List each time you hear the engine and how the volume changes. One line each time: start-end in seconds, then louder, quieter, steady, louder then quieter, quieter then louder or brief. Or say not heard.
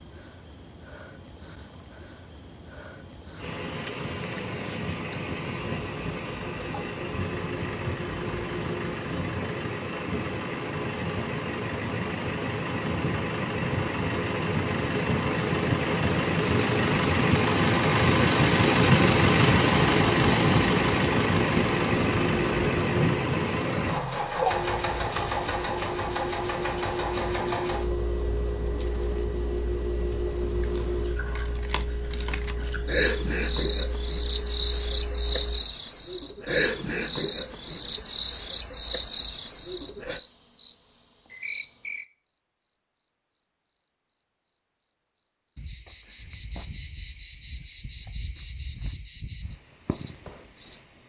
3.4-35.6 louder then quieter.